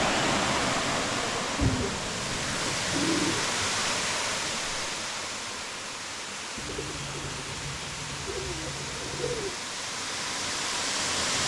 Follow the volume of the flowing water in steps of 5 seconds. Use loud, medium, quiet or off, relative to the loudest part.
loud, medium, loud.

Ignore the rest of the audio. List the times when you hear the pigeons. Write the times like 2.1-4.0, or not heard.
1.6-3.5, 6.5-9.6.